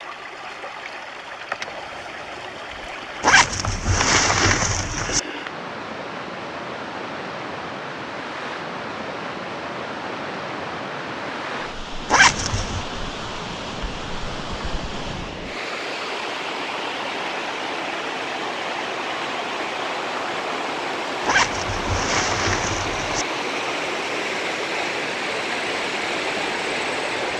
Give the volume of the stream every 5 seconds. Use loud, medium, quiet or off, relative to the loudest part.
medium, medium, medium, loud, loud, loud.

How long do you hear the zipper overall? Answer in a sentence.
The zipper can be heard for 5 seconds in total.